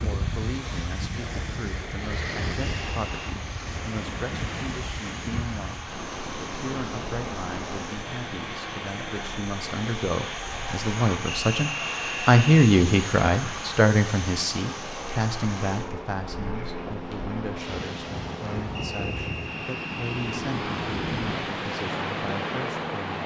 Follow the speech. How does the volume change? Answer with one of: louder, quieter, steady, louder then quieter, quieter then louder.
louder then quieter.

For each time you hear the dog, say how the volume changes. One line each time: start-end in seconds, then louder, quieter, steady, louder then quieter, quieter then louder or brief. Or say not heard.
not heard.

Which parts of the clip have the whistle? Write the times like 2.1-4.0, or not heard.
2.6-3.2, 11.2-12.5, 18.8-20.4.